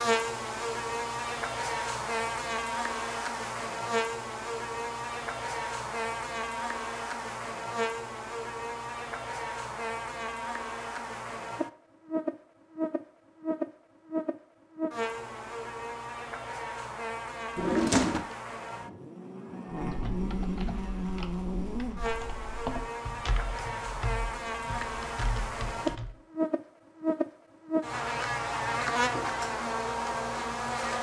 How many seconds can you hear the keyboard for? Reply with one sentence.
The keyboard can be heard for 6 seconds in total.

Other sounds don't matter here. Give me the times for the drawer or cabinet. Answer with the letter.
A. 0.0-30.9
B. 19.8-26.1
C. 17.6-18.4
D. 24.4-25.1
C.